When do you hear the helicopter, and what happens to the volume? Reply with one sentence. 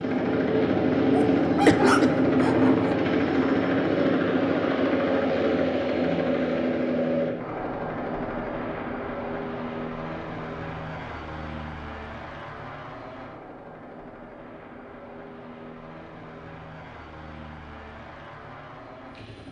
You can hear the helicopter from 0.0 to 19.4 s, getting quieter.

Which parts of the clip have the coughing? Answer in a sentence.
You can hear the coughing from 1.6 to 2.2 s.